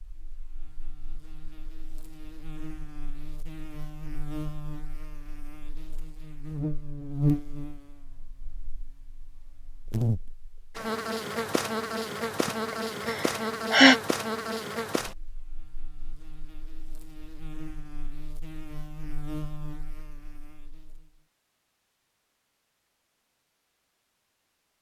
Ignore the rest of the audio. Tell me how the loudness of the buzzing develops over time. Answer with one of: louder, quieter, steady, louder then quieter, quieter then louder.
louder then quieter.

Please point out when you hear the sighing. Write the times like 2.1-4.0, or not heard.
12.4-13.9.